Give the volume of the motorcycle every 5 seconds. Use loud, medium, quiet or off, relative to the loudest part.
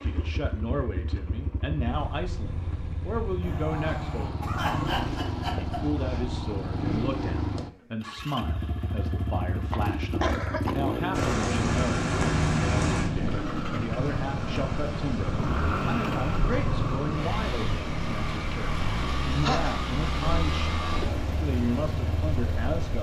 medium, loud, loud, loud, loud.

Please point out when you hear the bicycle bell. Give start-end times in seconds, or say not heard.
not heard.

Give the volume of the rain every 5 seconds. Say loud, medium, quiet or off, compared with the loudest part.
off, off, loud, medium, medium.